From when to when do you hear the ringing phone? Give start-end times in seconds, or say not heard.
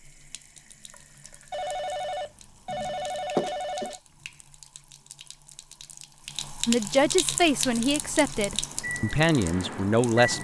1.5-4.0.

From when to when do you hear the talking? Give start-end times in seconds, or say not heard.
6.7-10.3.